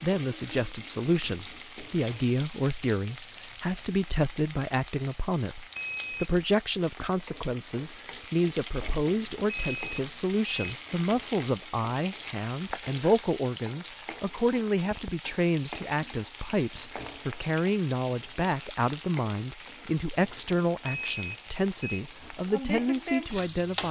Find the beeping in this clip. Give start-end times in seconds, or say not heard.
5.8-6.3, 9.4-10.8, 20.9-22.0.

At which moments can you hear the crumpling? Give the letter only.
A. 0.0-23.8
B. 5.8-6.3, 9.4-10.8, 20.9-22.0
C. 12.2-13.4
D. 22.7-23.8
C.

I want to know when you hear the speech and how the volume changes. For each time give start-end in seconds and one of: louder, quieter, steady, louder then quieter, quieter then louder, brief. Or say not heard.
0.0-23.8 steady.